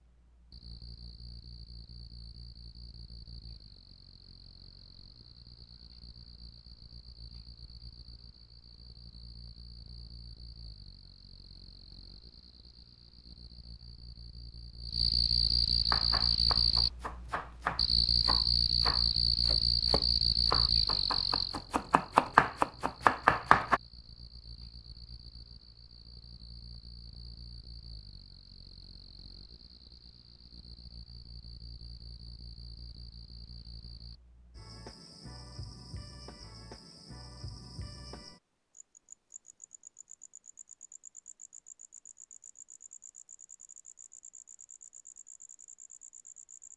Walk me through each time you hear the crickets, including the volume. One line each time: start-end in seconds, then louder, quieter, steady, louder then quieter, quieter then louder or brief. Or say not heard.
0.0-46.7 louder then quieter.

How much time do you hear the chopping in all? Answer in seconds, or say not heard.
8 s.